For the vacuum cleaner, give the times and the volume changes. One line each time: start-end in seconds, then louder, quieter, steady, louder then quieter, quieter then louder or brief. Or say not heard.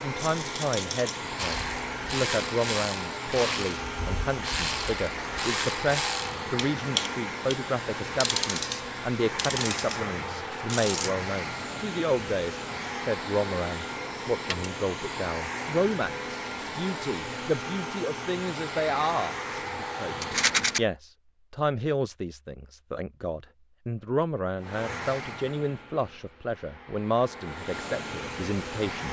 0.0-20.9 steady
24.6-29.0 quieter then louder.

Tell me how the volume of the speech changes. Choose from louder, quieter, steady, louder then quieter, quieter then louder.
steady.